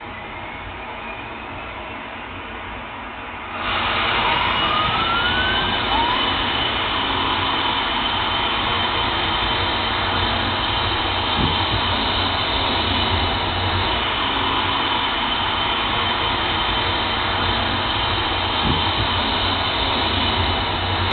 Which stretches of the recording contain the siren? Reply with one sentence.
The siren can be heard from 4.0 to 6.3 s.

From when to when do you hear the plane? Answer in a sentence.
You can hear the plane from 0.0 to 21.0 s.